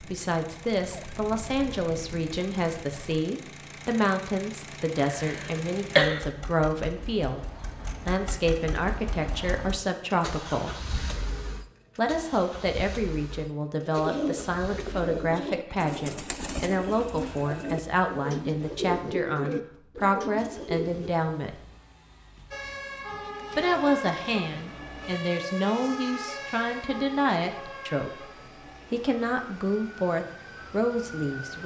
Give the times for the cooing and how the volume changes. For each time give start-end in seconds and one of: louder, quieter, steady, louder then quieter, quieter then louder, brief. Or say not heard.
13.8-21.2 steady.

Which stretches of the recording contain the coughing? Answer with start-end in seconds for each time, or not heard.
5.0-6.2.